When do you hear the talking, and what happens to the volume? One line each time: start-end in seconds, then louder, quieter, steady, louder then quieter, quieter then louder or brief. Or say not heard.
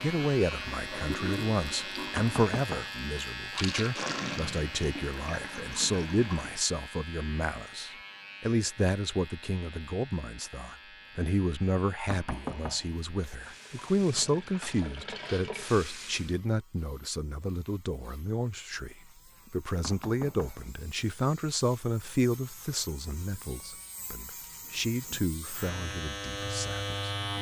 0.0-27.1 steady.